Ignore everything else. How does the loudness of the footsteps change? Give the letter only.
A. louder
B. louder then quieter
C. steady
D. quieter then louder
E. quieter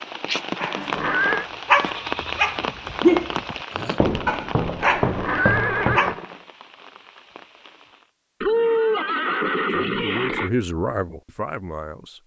A.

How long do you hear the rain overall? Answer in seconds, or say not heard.
8 s.